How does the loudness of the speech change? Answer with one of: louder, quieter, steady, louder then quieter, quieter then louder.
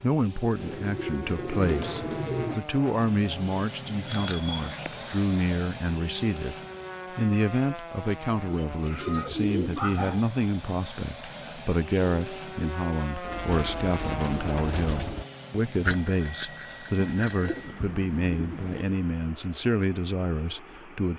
steady.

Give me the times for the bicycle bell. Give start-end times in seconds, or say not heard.
4.0-4.7, 15.8-17.8.